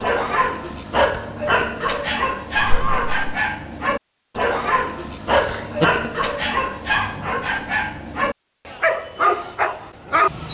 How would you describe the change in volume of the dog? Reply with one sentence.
The loudness of the dog stays about the same.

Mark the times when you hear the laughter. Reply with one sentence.
You can hear the laughter from 2.5 to 3.4 s and from 5.3 to 6.0 s.